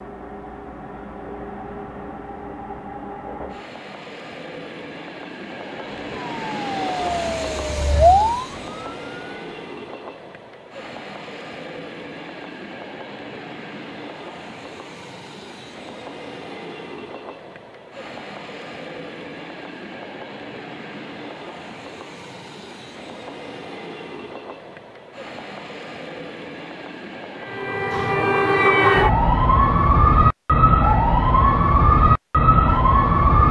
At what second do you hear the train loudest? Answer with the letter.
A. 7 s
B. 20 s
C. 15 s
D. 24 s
A.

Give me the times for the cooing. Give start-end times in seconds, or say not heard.
not heard.